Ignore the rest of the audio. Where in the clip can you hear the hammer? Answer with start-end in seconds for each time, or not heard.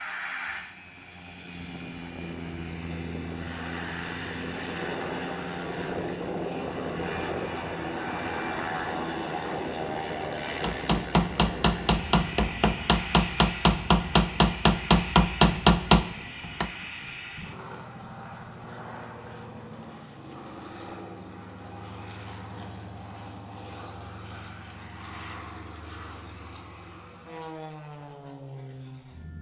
10.6-16.7.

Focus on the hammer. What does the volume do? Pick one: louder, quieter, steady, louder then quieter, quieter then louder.
louder.